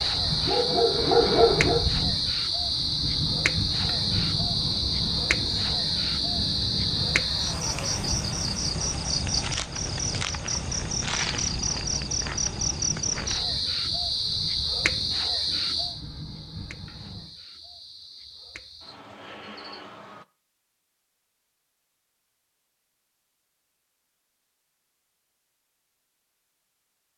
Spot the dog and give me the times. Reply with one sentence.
You can hear the dog from 0.0 to 1.9 s.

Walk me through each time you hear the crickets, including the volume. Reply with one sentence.
You can hear the crickets from 0.0 to 20.2 s, getting quieter.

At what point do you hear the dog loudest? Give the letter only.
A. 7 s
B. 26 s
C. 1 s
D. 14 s
C.